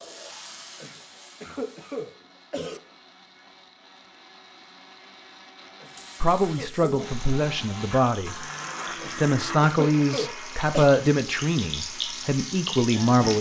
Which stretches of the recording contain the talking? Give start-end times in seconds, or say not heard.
6.2-8.4, 9.2-13.3.